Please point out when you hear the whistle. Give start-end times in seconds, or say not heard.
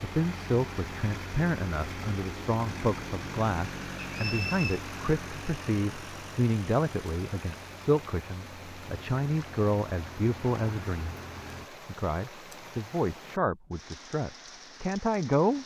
4.0-4.8.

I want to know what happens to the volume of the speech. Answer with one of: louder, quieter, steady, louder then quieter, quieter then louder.
steady.